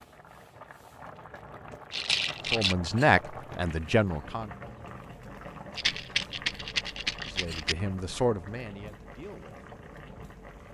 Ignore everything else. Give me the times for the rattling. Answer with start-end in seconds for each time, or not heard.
1.9-2.8, 5.8-7.8.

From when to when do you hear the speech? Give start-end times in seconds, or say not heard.
2.5-4.5, 7.2-9.7.